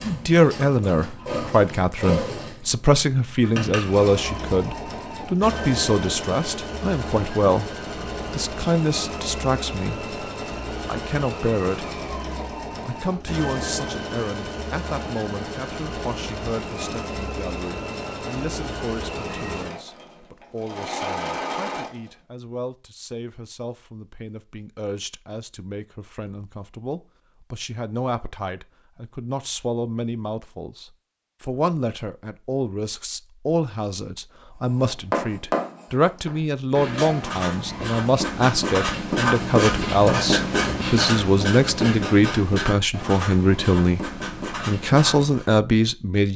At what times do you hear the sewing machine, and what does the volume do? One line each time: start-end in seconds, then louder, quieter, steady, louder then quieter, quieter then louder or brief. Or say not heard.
0.0-22.1 steady.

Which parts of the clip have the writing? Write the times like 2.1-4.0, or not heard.
34.6-45.5.